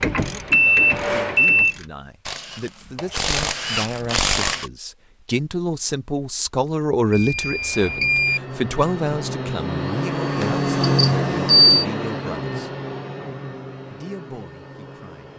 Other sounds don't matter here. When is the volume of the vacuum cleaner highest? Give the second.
11 s.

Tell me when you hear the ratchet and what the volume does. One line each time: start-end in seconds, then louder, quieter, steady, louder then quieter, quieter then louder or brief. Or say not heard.
0.0-4.7 quieter then louder.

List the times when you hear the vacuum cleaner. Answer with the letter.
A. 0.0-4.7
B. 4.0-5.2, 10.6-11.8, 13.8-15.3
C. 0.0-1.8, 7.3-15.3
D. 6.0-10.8
C.